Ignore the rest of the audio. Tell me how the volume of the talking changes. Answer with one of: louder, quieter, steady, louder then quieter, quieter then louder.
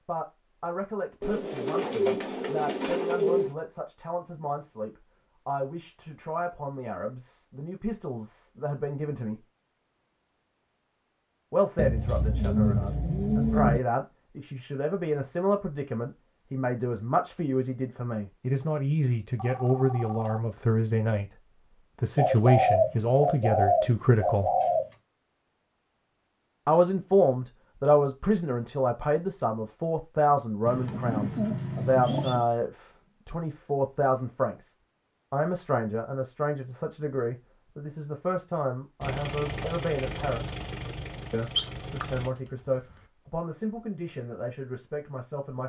louder then quieter.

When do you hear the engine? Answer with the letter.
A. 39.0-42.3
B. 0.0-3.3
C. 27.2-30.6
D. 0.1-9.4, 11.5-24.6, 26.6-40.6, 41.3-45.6
A.